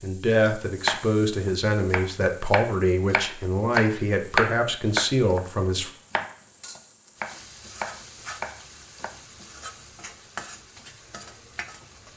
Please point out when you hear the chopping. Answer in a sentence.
You can hear the chopping from 0.8 to 5.5 s and from 6.1 to 9.1 s.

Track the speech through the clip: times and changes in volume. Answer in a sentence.
You can hear the speech from 0.0 to 5.9 s, at a steady volume.